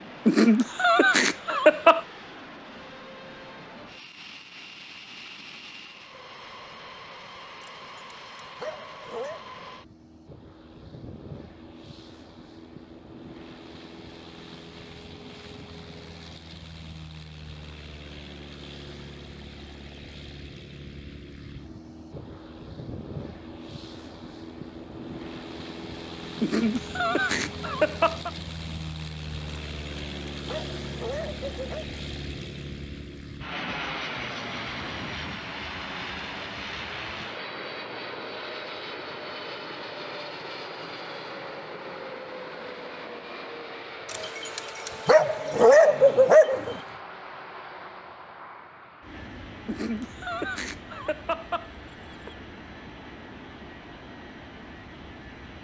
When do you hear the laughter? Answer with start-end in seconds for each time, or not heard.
0.2-2.0, 26.4-28.3, 49.6-52.4.